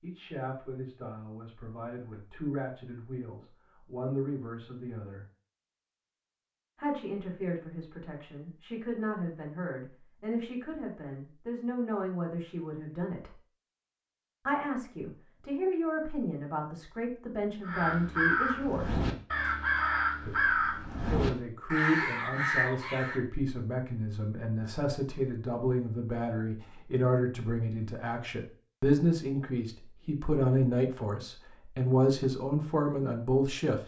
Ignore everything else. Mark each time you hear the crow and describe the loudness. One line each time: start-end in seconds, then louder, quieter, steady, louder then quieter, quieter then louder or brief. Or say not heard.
17.6-23.2 steady.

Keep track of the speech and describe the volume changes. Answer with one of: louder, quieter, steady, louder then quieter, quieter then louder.
louder.